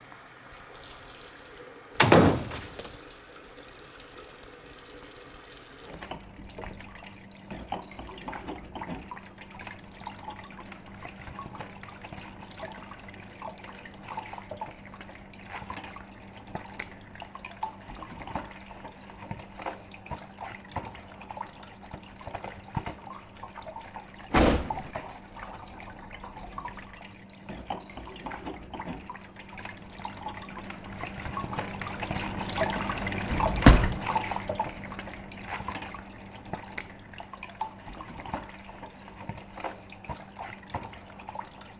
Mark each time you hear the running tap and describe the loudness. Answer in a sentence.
The running tap can be heard from 0.0 to 41.7 s, getting louder.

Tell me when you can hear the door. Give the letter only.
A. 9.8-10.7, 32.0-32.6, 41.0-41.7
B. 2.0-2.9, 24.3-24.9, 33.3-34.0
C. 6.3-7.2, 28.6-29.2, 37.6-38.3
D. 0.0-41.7
B.